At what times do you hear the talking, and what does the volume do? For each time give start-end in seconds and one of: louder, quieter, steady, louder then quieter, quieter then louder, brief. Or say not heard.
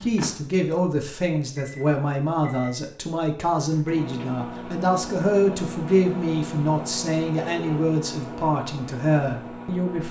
0.0-10.0 steady.